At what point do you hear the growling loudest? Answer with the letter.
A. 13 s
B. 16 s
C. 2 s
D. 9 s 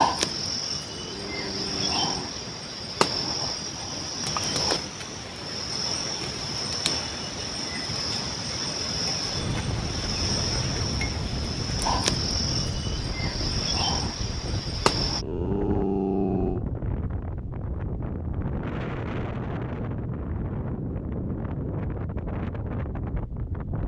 B.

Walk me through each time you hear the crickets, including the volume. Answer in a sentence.
You can hear the crickets from 0.0 to 15.2 s, at a steady volume.